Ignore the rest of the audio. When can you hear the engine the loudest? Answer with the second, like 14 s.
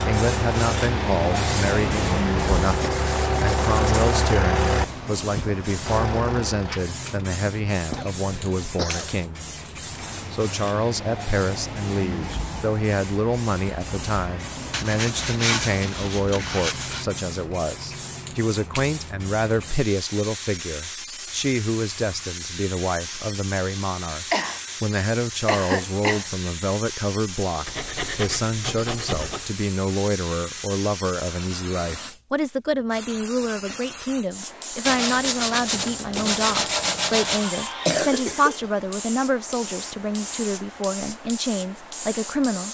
4 s.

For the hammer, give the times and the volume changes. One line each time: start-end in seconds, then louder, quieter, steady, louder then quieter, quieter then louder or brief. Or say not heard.
not heard.